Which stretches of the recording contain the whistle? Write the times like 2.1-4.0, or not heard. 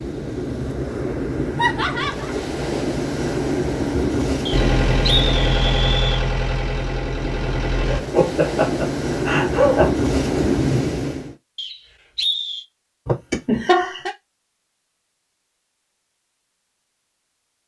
4.5-6.2, 11.6-12.7.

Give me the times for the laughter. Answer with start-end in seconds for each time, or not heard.
1.6-2.5, 8.0-9.9, 13.1-14.1.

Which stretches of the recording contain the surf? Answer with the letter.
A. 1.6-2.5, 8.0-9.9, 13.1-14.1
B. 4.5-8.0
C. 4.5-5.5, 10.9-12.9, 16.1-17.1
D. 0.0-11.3
D.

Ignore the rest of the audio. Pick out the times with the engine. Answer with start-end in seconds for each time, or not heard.
4.5-8.0.